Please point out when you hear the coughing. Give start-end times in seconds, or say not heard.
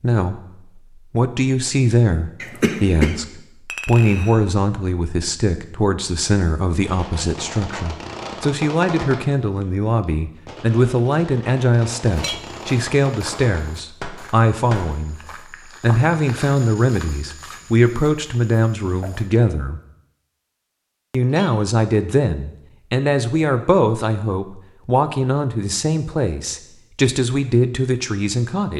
2.4-3.1.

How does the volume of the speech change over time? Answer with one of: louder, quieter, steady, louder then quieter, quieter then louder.
steady.